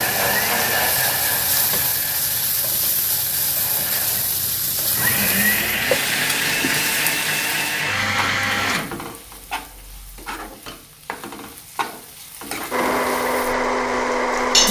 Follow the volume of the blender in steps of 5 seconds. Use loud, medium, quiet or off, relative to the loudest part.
medium, loud, loud.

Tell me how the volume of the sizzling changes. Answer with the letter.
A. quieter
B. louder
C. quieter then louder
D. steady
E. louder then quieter
A.